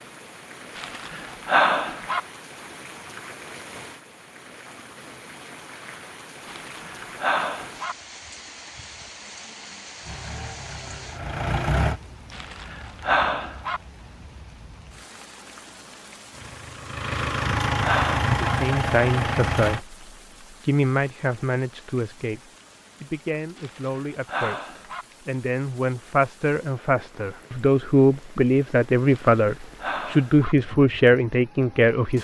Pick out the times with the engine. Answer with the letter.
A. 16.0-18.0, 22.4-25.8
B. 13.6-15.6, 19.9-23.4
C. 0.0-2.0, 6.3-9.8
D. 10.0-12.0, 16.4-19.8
D.